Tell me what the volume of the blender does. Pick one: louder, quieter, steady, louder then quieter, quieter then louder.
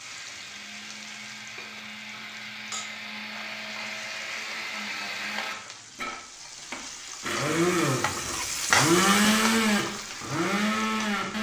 louder.